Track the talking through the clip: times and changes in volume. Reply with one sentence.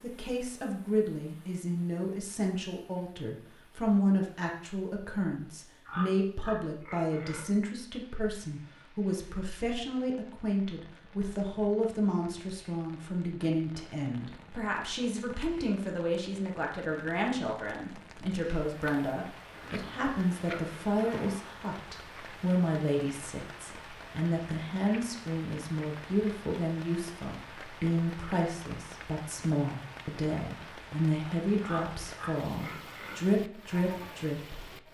You can hear the talking from 0.0 to 34.6 s, at a steady volume.